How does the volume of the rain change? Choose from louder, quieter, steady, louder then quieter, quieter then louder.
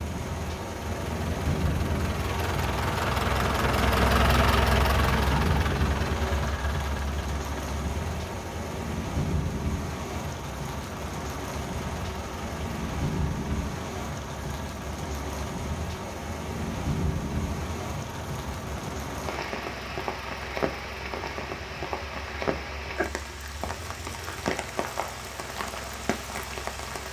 steady.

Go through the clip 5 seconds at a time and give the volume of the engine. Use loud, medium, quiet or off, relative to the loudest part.
loud, medium, quiet, quiet, quiet, quiet.